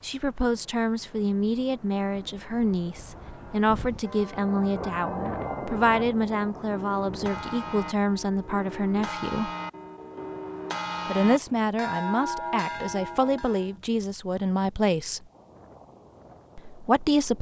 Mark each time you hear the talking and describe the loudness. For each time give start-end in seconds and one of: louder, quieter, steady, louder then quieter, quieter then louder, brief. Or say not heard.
0.0-9.5 steady
11.1-15.2 steady
16.6-17.3 brief.